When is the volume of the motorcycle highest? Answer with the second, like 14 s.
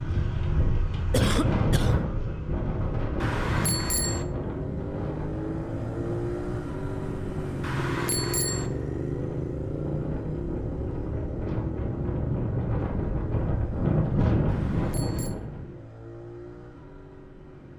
8 s.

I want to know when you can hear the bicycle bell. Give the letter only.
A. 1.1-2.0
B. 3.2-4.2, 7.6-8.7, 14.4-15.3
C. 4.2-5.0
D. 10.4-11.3
B.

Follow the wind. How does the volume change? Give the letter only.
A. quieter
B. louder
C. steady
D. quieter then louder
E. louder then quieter
D.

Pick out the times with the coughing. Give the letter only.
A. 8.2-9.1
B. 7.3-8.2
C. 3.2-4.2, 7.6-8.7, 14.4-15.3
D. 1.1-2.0
D.